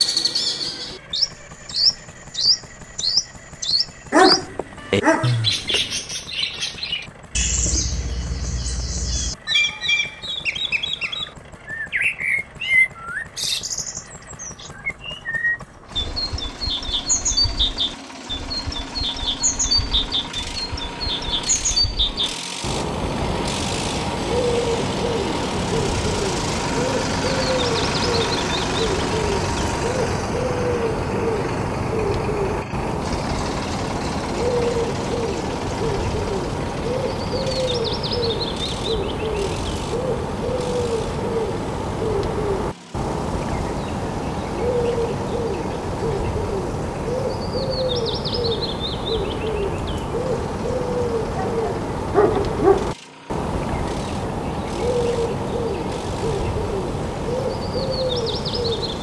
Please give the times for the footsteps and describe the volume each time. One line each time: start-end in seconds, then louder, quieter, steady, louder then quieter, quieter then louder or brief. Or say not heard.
not heard.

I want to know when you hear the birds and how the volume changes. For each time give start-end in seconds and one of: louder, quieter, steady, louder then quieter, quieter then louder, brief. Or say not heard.
0.0-58.9 steady.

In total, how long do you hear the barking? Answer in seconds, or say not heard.
3 s.